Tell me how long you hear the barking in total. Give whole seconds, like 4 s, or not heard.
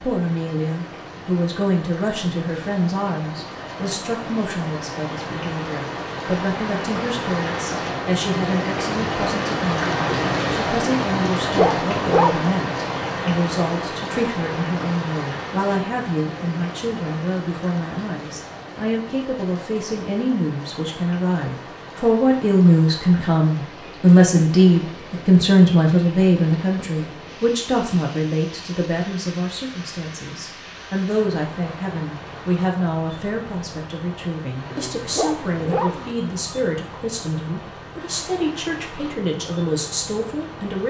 3 s.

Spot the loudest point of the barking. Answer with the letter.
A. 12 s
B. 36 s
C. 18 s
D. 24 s
A.